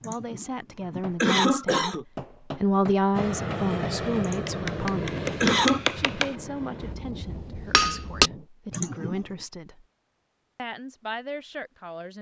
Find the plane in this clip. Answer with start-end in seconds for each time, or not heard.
3.1-7.0.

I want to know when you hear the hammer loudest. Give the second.
8 s.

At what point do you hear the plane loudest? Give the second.
4 s.